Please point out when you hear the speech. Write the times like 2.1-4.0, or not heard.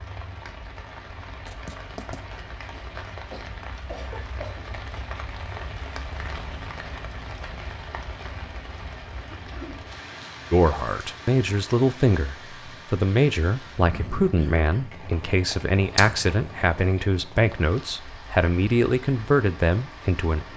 10.5-20.5.